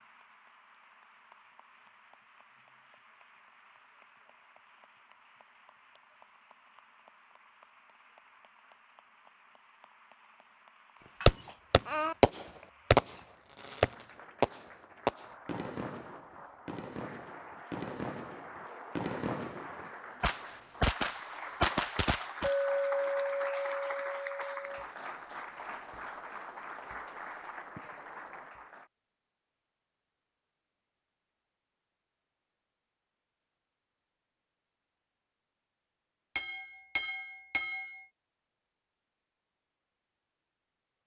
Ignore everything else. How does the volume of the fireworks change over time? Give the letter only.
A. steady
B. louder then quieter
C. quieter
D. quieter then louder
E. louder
D.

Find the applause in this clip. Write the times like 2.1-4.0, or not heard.
0.0-28.9.